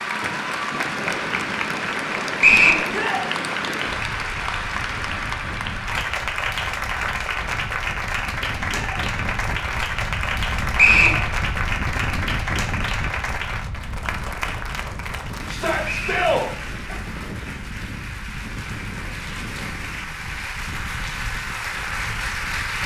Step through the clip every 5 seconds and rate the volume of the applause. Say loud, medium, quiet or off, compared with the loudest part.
loud, loud, loud, medium, loud.